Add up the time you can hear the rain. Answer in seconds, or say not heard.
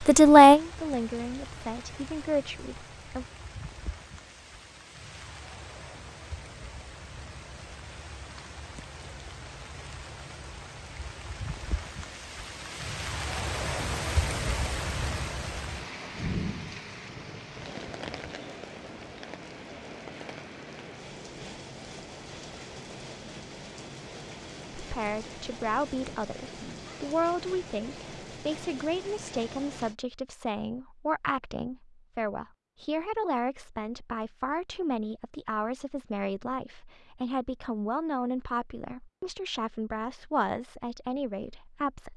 30 s.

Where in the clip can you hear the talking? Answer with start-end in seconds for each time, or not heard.
0.1-3.2, 24.7-42.1.